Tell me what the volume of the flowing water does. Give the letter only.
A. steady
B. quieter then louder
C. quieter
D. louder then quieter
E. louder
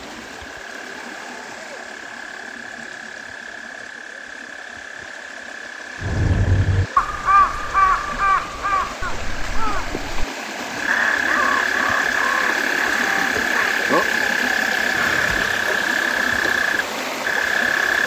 E.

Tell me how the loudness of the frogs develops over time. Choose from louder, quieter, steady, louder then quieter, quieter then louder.
louder.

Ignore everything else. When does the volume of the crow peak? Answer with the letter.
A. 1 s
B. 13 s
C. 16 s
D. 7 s
D.